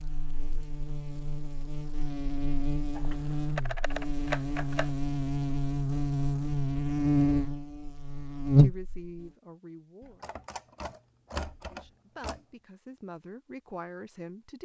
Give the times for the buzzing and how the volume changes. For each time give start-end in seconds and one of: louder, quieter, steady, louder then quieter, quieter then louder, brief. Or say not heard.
0.0-9.3 louder.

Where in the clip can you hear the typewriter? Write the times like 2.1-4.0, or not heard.
3.0-4.9, 10.2-12.4.